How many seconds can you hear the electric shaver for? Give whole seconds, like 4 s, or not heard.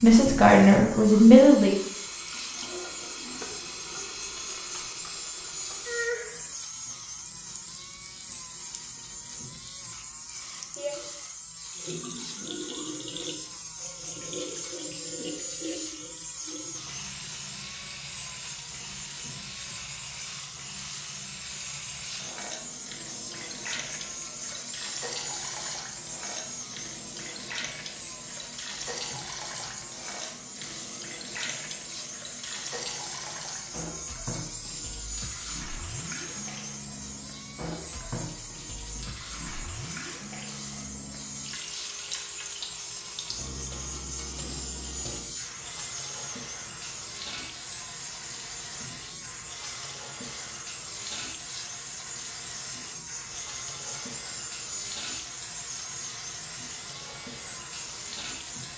59 s.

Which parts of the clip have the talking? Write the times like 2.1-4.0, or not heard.
0.0-1.8.